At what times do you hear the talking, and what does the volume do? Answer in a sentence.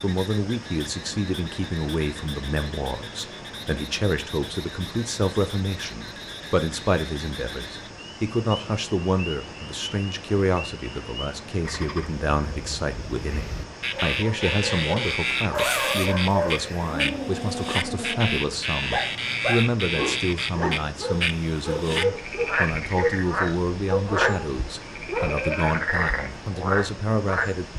The talking can be heard from 0.0 to 27.7 s, at a steady volume.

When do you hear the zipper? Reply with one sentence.
You can hear the zipper from 15.6 to 17.0 s.